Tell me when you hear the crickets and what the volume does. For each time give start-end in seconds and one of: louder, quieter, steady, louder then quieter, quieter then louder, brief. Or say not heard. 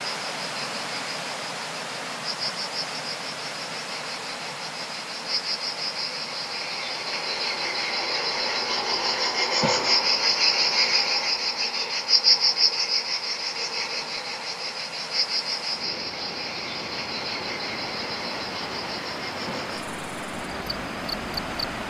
0.0-21.8 louder then quieter.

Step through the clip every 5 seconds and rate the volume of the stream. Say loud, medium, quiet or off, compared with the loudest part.
loud, medium, medium, loud, loud.